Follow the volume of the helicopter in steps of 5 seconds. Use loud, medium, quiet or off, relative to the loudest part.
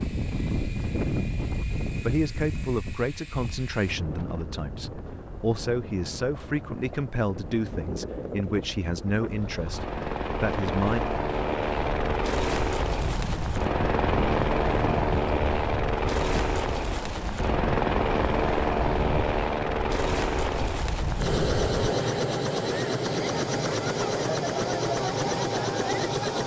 quiet, quiet, loud, loud, loud, loud.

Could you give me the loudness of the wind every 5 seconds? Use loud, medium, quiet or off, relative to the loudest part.
loud, medium, loud, loud, loud, off.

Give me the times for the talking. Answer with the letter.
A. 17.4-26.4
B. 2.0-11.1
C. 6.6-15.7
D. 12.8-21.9
B.